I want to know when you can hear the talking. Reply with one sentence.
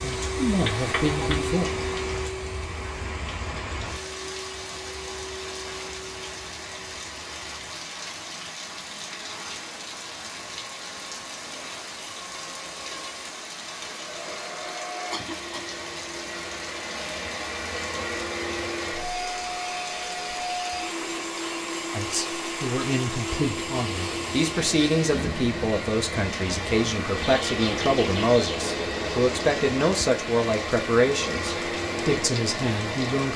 The talking can be heard from 0.0 to 1.6 s and from 21.9 to 33.3 s.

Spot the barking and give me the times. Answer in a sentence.
The barking can't be heard in this clip.